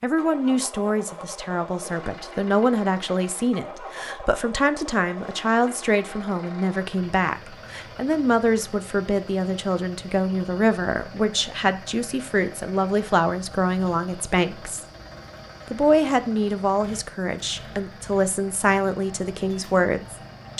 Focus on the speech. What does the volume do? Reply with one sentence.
The volume of the speech stays about the same.